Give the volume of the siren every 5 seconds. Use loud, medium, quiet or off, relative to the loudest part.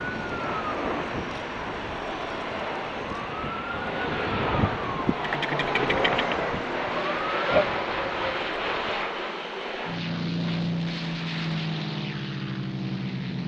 medium, loud, off.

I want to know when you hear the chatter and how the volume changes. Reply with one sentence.
You can't hear the chatter here.